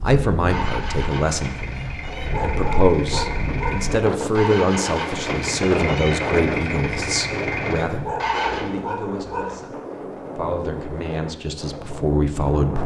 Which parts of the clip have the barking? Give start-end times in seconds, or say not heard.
2.0-3.8, 7.8-9.6.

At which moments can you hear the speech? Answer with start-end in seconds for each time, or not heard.
0.0-12.8.